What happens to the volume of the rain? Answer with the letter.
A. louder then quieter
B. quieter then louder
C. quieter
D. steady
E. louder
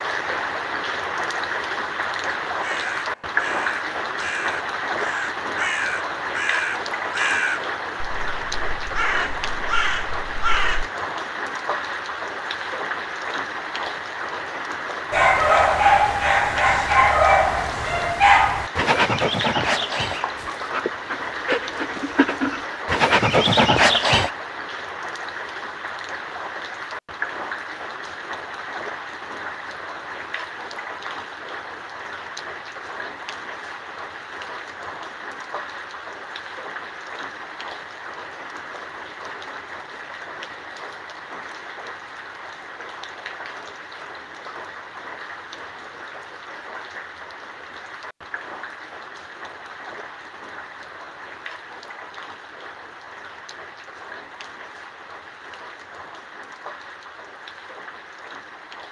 C.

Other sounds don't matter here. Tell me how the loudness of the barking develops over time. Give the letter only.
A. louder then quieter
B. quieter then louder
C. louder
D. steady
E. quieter
B.